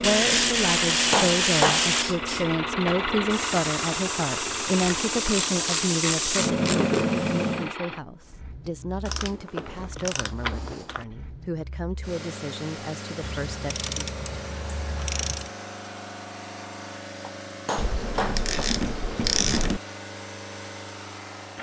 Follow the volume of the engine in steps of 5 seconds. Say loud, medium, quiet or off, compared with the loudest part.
loud, medium, medium, medium, medium.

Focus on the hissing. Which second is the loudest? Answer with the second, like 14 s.
7 s.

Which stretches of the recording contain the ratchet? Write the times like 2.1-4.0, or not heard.
0.0-2.0, 4.8-7.0, 9.1-11.1, 13.2-15.5, 17.8-19.8.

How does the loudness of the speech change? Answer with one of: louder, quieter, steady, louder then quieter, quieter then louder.
quieter.